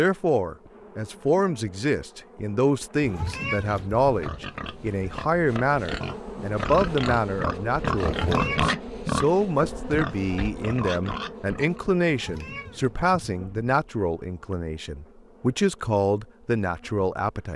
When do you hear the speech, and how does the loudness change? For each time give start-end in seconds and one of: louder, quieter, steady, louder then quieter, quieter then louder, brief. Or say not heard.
0.0-17.5 steady.